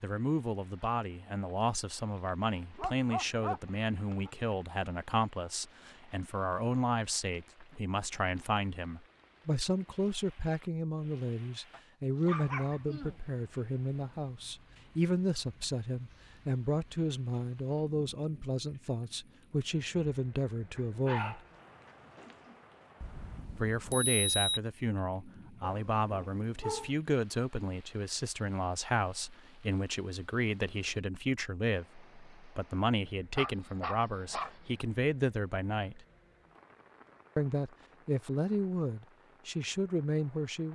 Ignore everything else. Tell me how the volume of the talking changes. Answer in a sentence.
The loudness of the talking stays about the same.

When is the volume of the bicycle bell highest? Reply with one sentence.
The volume of the bicycle bell peaks at 24 seconds.